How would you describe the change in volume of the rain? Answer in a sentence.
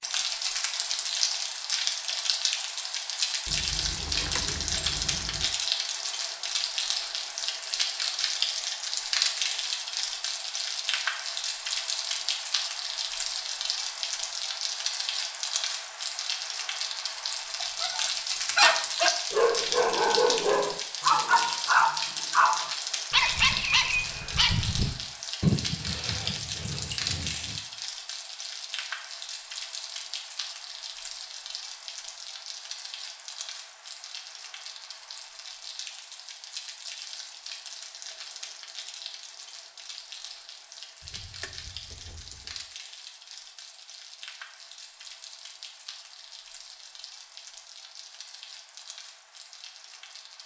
The loudness of the rain goes down.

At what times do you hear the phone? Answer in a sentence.
The phone can't be heard in this clip.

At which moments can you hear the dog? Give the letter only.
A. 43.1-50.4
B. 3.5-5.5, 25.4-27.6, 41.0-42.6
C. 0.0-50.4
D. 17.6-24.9
D.